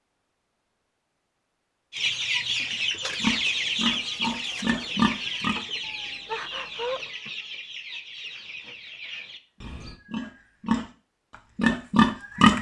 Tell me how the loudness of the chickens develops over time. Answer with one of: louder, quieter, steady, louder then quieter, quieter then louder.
quieter.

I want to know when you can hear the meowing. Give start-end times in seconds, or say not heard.
5.8-7.0.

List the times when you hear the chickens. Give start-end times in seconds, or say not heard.
1.9-10.0.